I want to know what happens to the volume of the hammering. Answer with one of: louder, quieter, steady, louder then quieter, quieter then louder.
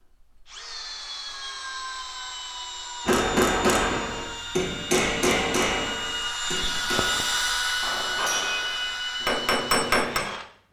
quieter then louder.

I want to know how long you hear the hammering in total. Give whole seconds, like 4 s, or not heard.
7 s.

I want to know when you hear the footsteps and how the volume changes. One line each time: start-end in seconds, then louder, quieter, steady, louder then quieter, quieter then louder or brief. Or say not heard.
not heard.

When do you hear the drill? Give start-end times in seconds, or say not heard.
0.2-10.5.